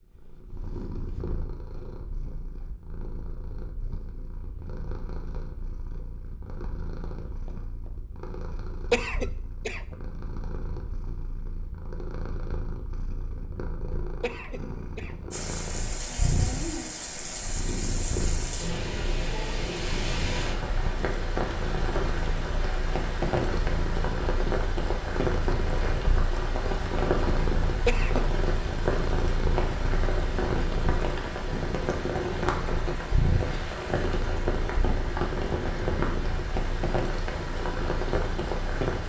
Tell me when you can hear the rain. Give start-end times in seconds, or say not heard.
15.3-39.0.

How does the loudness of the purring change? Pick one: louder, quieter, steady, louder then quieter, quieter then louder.
louder.